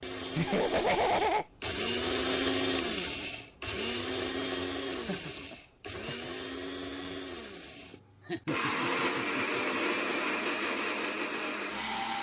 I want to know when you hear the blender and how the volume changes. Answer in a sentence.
You can hear the blender from 0.0 to 12.1 s, getting quieter then louder.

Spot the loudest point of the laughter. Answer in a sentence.
The loudest moment of the laughter is at 1 second.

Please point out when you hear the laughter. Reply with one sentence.
The laughter can be heard from 0.3 to 1.4 s, from 4.9 to 6.3 s and from 8.2 to 10.0 s.